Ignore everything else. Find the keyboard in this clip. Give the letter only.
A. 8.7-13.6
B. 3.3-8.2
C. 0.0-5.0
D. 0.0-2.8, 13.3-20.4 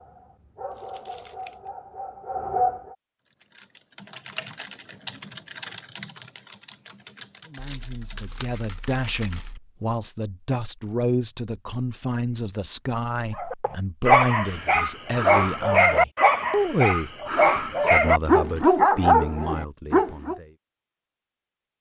B.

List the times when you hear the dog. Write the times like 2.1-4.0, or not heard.
0.0-2.8, 13.3-20.4.